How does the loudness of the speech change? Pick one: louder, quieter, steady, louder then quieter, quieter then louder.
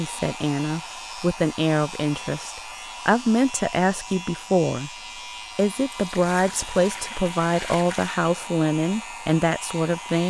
steady.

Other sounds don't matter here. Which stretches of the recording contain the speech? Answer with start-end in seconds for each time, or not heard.
0.0-4.9, 5.5-10.2.